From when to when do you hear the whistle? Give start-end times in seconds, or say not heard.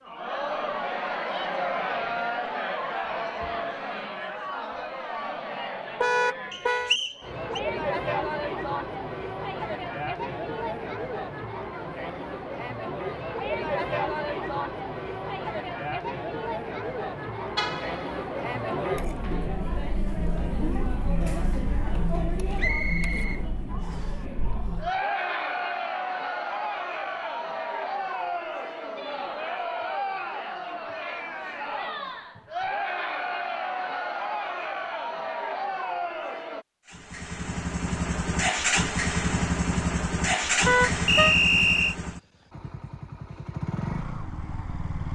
6.5-7.6, 22.6-24.1, 41.0-42.0.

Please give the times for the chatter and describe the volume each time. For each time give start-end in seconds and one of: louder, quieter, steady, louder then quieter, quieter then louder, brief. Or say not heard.
0.0-36.6 steady.